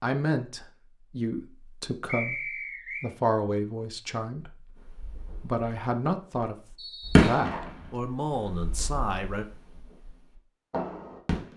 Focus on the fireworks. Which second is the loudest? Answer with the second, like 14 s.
7 s.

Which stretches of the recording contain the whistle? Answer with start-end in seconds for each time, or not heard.
2.0-3.1, 6.8-7.3.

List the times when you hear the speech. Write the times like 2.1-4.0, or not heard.
0.0-6.5, 7.2-9.4.